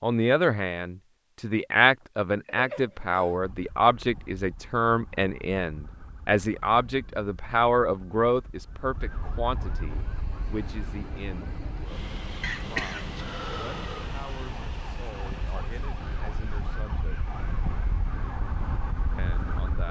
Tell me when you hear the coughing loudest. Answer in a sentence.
The loudest moment of the coughing is at 13 seconds.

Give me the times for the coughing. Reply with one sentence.
The coughing can be heard from 2.5 to 3.4 s and from 12.4 to 14.1 s.